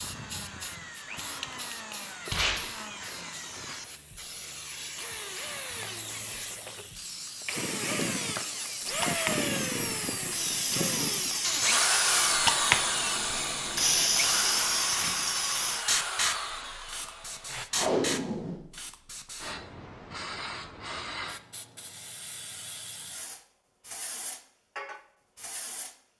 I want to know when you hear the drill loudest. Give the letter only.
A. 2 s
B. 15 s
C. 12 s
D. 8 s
C.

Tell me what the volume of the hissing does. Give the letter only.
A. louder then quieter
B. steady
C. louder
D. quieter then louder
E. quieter
A.